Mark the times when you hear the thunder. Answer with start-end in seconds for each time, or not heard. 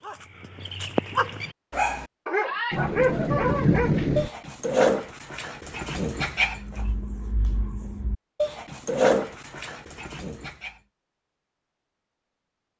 2.7-4.3.